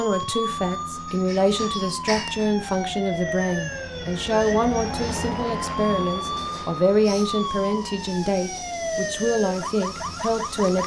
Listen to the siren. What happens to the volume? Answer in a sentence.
The loudness of the siren stays about the same.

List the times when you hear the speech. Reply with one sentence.
You can hear the speech from 0.0 to 10.8 s.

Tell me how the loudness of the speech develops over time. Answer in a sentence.
The loudness of the speech stays about the same.